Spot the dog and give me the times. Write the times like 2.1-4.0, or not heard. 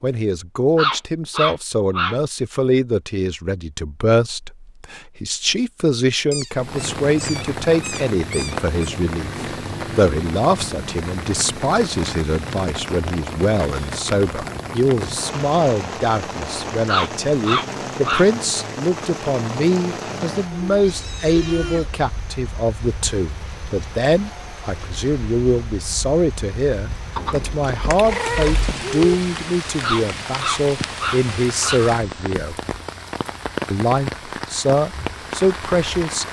0.8-2.1, 16.9-18.2, 29.8-31.8.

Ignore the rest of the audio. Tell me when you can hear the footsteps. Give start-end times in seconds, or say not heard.
not heard.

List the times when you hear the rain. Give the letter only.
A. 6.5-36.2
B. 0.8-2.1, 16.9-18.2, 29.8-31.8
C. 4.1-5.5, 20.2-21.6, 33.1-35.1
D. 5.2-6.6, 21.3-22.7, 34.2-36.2
A.